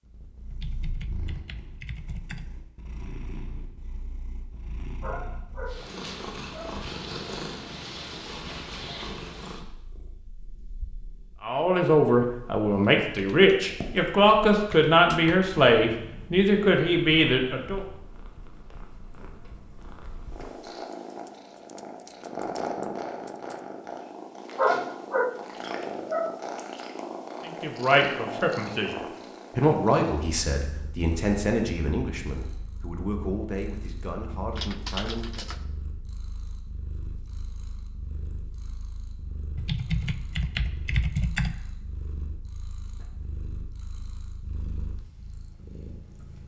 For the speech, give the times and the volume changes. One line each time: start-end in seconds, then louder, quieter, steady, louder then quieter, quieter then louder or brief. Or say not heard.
11.4-17.9 steady
27.4-35.5 quieter.